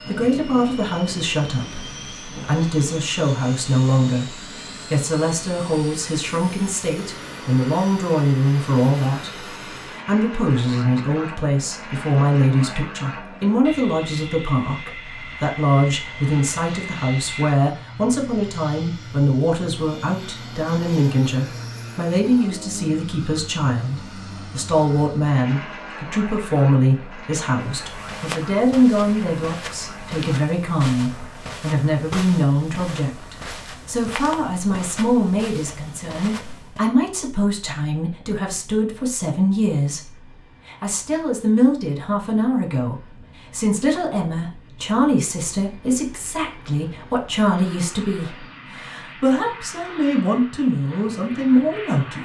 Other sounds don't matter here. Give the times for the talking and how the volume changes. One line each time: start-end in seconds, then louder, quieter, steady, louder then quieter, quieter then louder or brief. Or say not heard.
0.1-52.1 steady.